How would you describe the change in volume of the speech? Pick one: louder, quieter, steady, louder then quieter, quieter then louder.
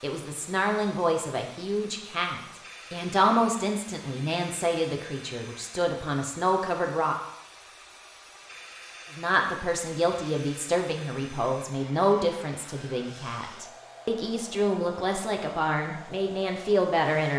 steady.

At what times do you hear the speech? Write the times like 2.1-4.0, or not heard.
0.0-7.2, 9.2-17.3.